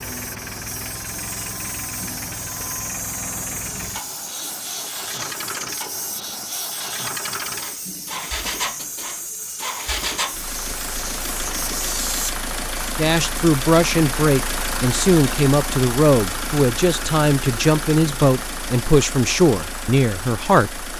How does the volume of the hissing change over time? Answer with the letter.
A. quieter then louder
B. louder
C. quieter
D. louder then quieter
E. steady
E.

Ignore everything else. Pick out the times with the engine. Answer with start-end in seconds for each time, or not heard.
0.0-20.9.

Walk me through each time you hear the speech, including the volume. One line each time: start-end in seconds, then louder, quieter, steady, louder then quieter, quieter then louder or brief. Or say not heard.
12.9-20.9 steady.